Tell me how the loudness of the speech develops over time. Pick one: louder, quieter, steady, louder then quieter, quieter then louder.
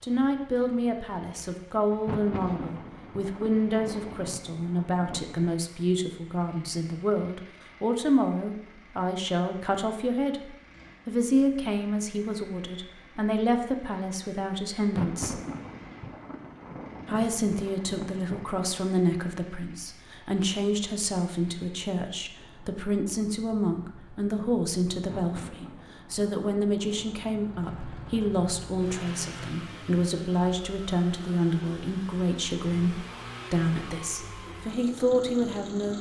steady.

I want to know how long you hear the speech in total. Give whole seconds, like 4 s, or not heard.
34 s.